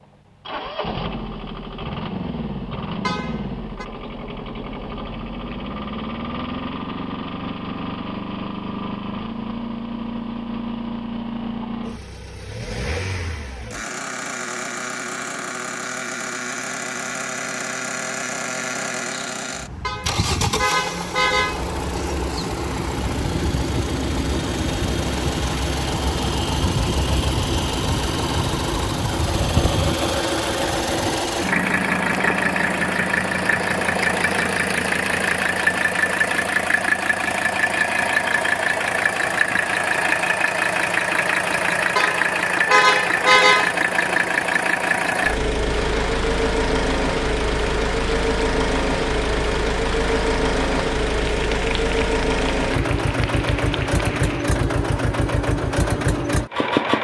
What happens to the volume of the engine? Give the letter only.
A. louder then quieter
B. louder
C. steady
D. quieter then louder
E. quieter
B.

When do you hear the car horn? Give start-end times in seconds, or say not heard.
3.0-3.9, 19.8-21.6, 42.0-43.8.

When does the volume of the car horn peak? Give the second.
43 s.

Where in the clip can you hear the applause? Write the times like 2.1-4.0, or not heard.
45.6-54.5.